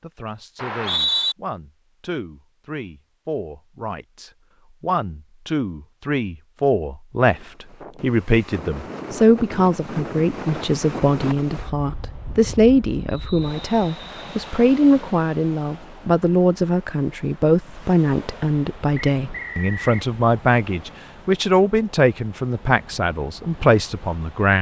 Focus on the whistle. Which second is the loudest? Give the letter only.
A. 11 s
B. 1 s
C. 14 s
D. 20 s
B.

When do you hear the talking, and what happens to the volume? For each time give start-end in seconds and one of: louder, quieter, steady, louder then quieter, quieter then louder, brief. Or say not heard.
0.0-24.5 louder.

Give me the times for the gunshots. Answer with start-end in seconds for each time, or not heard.
not heard.